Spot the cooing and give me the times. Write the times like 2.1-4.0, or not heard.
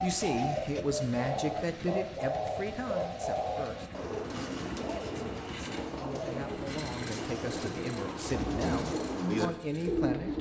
0.0-10.3.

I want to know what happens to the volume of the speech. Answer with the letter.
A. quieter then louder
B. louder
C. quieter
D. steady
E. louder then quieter
A.